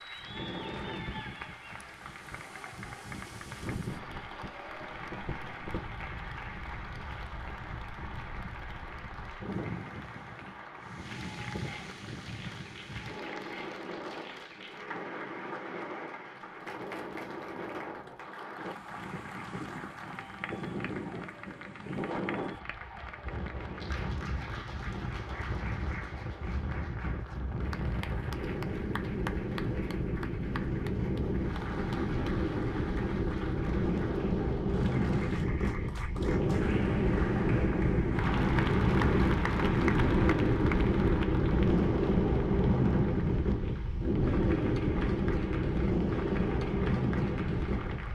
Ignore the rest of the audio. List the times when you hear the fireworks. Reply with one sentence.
You can't hear the fireworks here.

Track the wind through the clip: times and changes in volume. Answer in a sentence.
The wind can be heard from 0.0 to 48.1 s, getting louder.